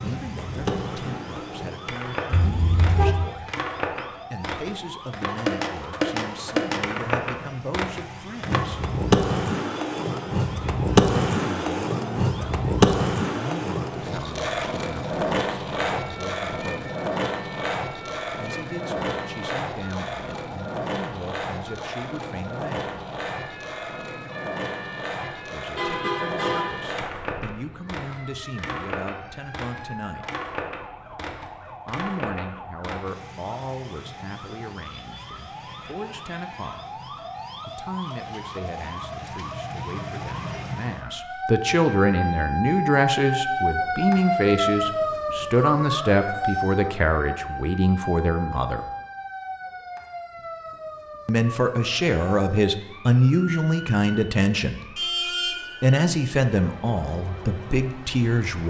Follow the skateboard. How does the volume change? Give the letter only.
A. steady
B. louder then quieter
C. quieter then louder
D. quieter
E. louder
B.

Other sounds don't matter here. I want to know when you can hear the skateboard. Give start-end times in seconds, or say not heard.
0.0-33.1.